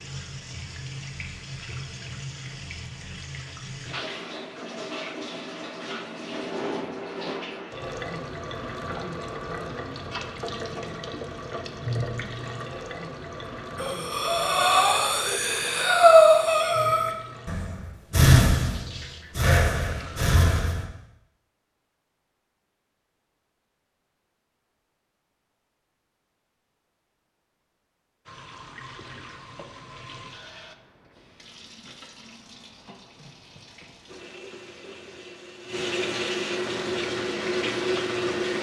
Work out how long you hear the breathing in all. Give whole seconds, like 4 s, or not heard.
7 s.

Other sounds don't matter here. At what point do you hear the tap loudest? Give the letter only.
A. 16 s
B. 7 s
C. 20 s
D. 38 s
D.